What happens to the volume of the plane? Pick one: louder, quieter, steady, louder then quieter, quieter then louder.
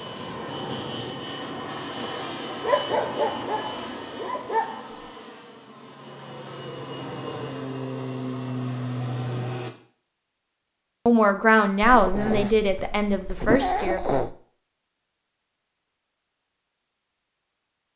quieter then louder.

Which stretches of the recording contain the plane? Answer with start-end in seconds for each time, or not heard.
0.0-9.8.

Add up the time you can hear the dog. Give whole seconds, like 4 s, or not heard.
5 s.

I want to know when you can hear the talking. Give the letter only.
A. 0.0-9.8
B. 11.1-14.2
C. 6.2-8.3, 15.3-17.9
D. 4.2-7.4
B.